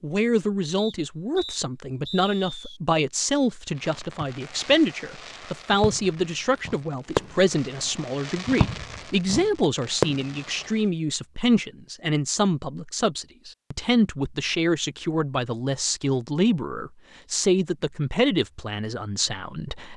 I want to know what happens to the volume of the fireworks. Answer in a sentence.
The loudness of the fireworks goes up.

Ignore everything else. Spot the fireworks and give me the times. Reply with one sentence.
The fireworks can be heard from 3.8 to 10.8 s.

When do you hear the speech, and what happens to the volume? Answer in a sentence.
You can hear the speech from 0.0 to 19.9 s, at a steady volume.